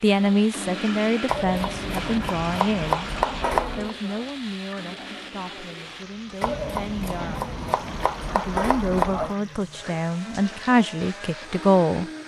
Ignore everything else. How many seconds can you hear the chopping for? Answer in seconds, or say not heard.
6 s.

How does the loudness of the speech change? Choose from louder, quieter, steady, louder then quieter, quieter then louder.
quieter then louder.